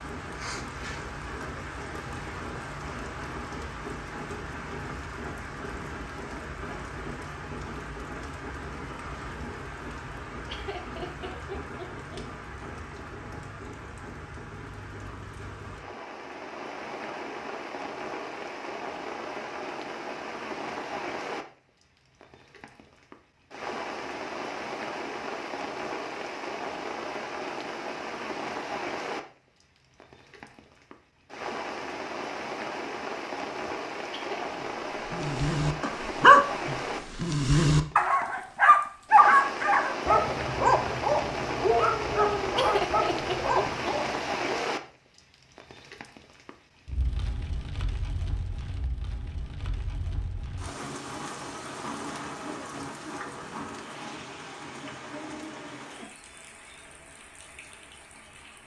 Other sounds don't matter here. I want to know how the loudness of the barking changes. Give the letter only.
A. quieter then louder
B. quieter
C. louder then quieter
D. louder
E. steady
B.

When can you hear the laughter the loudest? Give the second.
43 s.